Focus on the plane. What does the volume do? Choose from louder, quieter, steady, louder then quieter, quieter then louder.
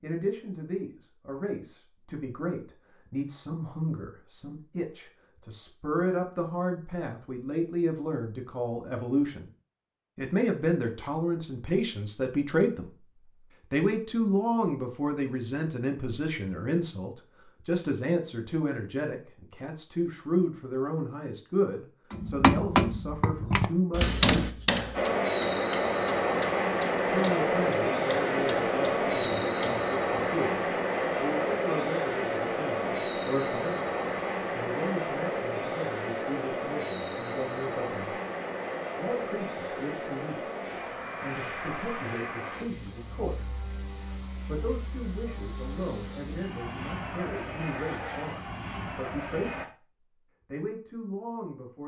quieter.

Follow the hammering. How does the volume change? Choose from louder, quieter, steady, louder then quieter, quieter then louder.
quieter.